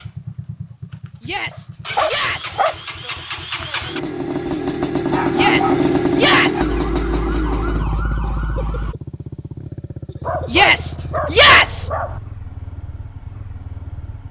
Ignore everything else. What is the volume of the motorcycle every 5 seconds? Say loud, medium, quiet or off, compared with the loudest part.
medium, loud, quiet.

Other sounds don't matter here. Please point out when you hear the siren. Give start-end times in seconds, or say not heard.
6.5-8.9.